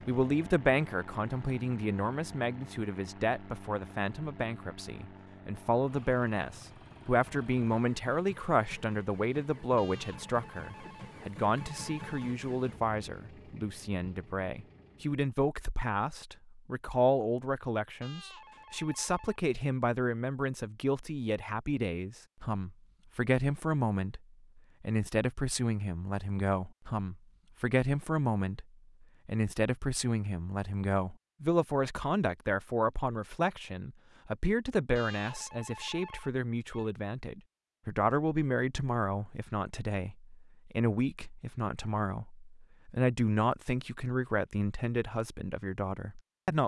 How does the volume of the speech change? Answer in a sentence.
The loudness of the speech stays about the same.